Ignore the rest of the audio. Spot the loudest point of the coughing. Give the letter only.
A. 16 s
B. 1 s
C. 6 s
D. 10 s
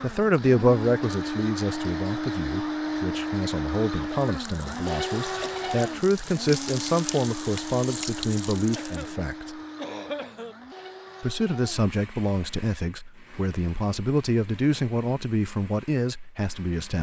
D.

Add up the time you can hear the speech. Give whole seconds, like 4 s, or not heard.
15 s.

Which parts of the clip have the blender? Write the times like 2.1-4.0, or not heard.
0.0-16.9.